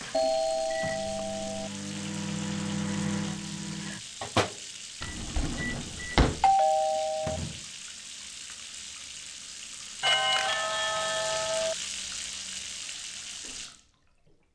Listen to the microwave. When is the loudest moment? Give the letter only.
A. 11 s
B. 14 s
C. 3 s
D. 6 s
C.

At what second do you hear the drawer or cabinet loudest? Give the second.
6 s.